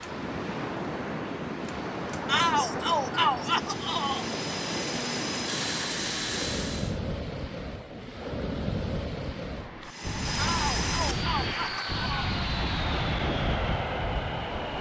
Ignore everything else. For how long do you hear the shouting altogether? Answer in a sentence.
The shouting can be heard for 4 seconds in total.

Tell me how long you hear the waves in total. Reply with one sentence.
You can hear the waves for 15 seconds altogether.